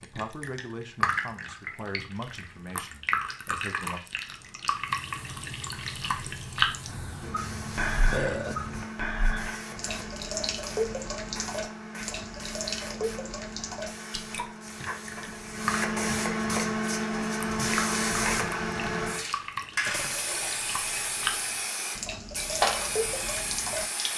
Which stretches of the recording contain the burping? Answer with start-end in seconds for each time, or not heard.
6.8-8.8, 19.9-20.6.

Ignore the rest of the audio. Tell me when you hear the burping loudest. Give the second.
8 s.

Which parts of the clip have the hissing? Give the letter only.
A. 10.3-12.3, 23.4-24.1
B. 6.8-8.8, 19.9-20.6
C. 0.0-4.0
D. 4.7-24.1
D.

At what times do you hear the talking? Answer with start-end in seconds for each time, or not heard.
0.0-4.0.